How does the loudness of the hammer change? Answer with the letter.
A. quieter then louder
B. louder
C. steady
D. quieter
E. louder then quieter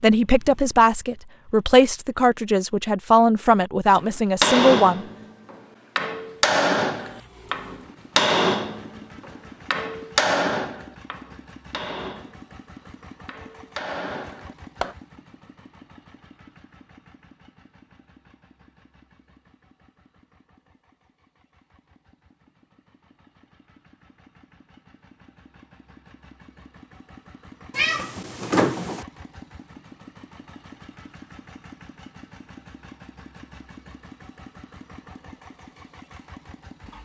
D.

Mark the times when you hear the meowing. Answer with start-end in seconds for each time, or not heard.
27.7-29.1.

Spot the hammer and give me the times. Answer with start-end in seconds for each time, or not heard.
3.9-14.9.